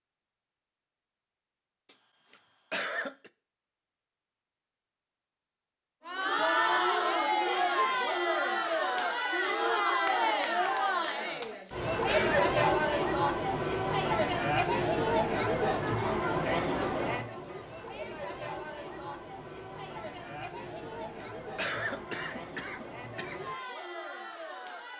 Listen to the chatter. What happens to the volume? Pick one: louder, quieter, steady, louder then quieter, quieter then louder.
quieter.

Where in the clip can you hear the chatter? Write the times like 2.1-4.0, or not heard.
6.0-24.9.